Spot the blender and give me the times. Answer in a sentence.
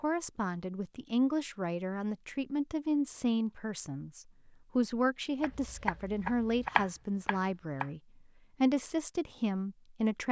The blender can't be heard in this clip.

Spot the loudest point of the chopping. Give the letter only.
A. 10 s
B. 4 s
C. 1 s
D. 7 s
D.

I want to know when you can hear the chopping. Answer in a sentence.
The chopping can be heard from 5.4 to 7.9 s.